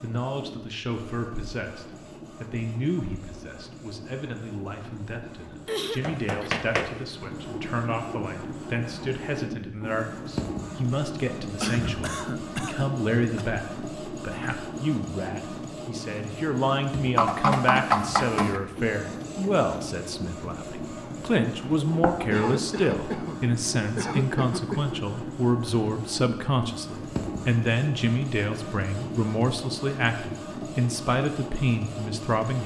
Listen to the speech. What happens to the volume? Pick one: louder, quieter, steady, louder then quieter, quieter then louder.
louder.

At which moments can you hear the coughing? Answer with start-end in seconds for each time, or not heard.
5.2-6.5, 11.6-13.4, 22.3-24.9.